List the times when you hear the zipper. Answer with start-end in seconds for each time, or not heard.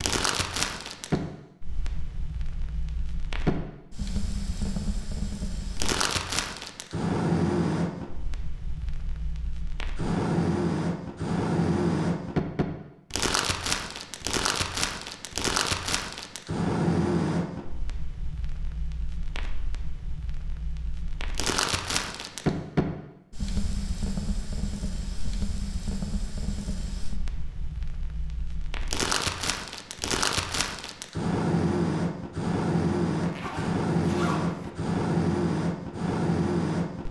33.2-34.7.